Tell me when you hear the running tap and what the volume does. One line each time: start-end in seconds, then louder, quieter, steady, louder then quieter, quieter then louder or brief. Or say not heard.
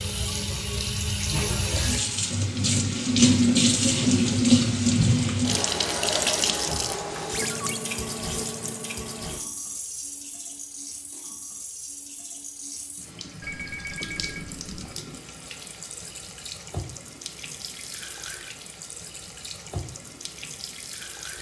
0.0-21.3 quieter.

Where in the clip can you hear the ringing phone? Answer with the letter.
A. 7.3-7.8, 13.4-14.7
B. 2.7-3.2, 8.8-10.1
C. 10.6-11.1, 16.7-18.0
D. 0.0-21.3
A.